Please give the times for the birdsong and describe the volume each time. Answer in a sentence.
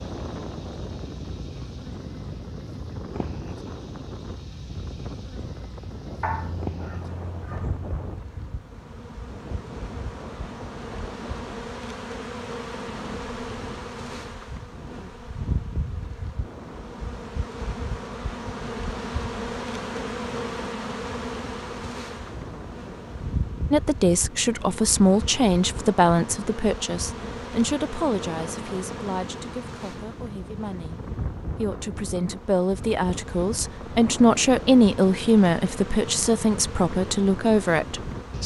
You can't hear the birdsong here.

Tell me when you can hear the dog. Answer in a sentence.
You can hear the dog from 6.2 to 8.2 s.